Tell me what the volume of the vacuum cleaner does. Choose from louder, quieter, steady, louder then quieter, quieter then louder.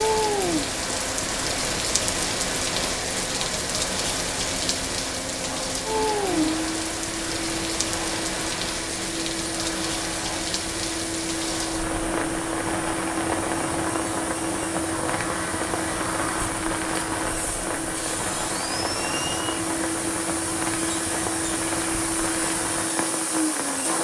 louder.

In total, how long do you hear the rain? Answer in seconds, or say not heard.
24 s.